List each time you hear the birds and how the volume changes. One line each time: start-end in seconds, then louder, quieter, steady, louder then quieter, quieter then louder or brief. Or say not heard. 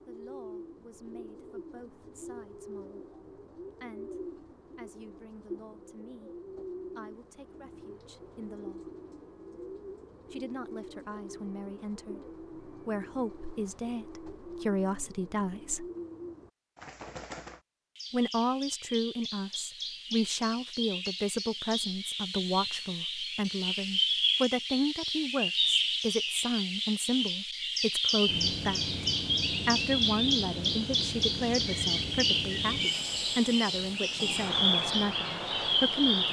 0.0-36.2 louder.